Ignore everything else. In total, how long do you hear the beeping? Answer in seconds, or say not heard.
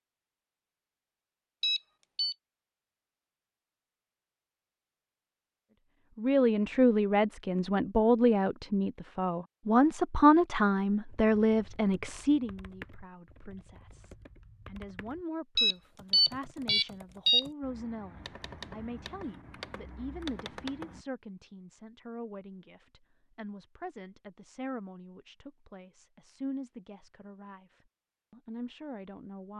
3 s.